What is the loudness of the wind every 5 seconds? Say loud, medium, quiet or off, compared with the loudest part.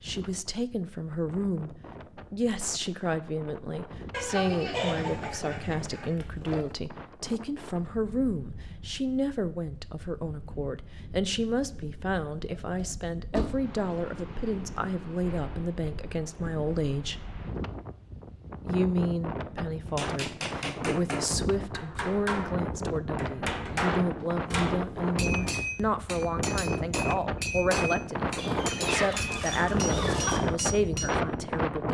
quiet, quiet, quiet, medium, medium, loud, loud.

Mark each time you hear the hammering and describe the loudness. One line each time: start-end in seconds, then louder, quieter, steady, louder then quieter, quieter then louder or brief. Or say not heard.
19.9-31.2 steady.